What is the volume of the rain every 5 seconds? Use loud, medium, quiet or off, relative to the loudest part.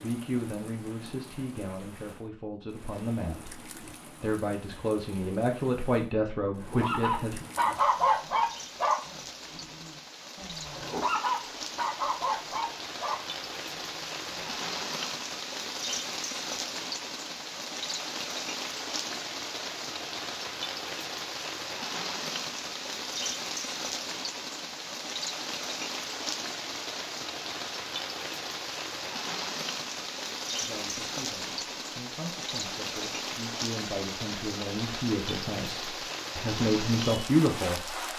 quiet, medium, loud, loud, loud, loud, loud, loud.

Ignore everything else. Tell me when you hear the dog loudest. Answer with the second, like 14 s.
8 s.